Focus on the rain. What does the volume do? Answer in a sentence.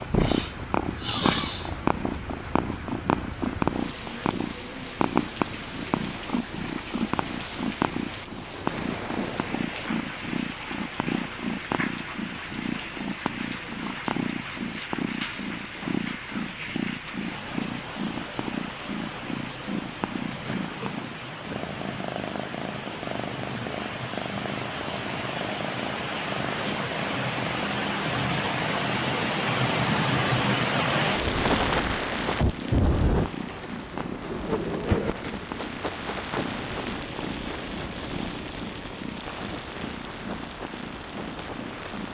The volume of the rain goes up, then down.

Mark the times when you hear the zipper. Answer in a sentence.
You can't hear the zipper here.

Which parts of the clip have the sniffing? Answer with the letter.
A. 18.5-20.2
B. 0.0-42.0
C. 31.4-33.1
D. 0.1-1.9
D.